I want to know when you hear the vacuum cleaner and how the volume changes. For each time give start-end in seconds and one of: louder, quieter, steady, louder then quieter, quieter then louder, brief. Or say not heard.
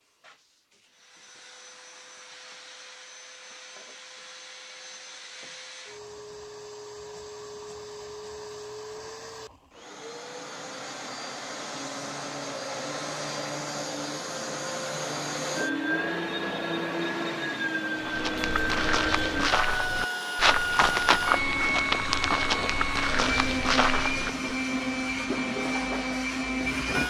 0.0-27.0 louder.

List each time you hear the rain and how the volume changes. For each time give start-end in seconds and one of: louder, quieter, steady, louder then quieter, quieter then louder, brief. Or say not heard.
not heard.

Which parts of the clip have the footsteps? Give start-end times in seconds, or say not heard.
18.1-24.5.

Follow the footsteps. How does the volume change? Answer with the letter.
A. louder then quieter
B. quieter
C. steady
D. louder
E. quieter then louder
C.